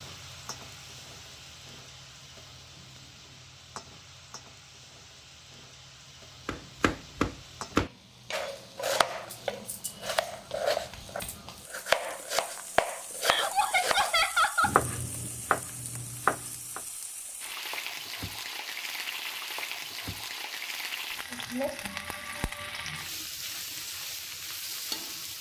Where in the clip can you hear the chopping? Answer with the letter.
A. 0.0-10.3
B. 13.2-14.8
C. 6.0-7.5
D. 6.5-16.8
D.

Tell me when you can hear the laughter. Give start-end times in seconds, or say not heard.
13.2-14.8.